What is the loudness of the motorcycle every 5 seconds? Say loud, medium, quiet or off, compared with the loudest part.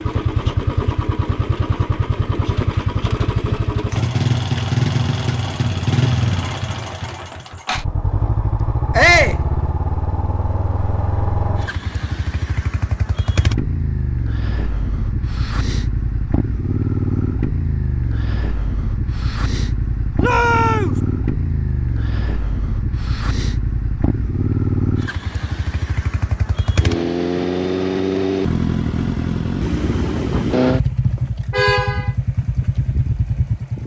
loud, loud, medium, loud, loud, loud, loud.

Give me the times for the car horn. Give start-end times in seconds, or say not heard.
31.5-32.1.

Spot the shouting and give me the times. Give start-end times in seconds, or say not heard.
8.9-9.4, 20.2-20.9.